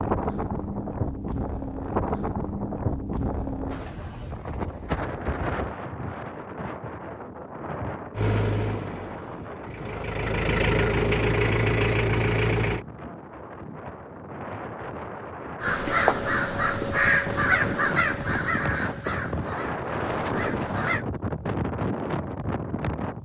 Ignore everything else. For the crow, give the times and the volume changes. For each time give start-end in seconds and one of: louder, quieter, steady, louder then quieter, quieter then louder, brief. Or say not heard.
15.6-21.1 quieter.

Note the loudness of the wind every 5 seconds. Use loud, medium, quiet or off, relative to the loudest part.
loud, medium, medium, loud, loud.